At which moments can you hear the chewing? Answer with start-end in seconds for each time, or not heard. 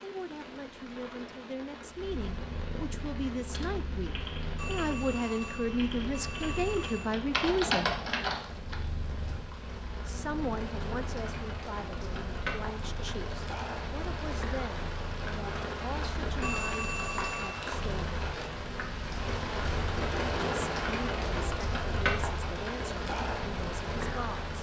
not heard.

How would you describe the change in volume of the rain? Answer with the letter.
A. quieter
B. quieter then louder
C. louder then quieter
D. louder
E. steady
D.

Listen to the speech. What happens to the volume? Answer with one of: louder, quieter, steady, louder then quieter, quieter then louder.
louder then quieter.